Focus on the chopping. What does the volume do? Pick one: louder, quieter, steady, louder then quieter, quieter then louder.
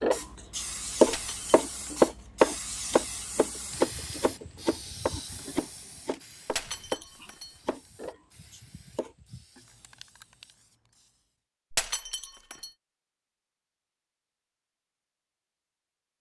quieter.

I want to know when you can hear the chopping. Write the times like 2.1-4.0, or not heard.
0.0-9.1.